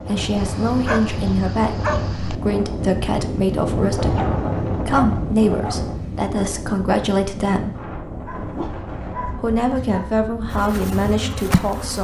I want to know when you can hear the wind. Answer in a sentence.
The wind can be heard from 0.0 to 11.9 s.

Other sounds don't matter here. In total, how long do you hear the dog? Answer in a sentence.
You can hear the dog for 6 seconds altogether.